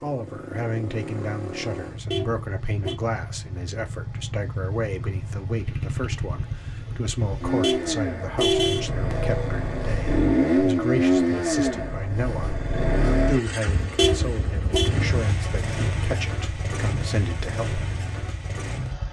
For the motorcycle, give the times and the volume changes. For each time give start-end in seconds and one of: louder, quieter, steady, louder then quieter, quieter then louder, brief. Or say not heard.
0.0-19.0 louder then quieter.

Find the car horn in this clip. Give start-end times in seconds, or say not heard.
2.1-3.0, 7.6-8.8, 13.9-14.9.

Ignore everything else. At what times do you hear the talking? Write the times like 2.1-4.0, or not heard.
0.0-17.8.